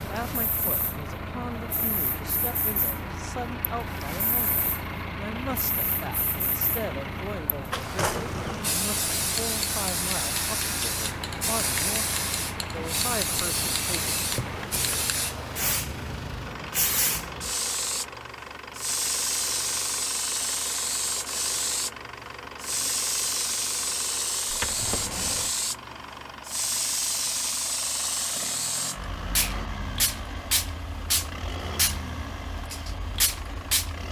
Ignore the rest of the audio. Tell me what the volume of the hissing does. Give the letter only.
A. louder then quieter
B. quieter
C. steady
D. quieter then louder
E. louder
E.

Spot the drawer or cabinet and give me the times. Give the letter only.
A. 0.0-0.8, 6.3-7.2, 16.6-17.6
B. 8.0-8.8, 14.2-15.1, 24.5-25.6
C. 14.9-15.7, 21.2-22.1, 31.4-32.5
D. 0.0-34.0
B.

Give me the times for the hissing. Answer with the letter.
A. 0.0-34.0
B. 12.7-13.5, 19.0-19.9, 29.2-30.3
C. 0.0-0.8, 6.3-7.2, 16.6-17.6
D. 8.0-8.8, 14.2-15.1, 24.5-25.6
A.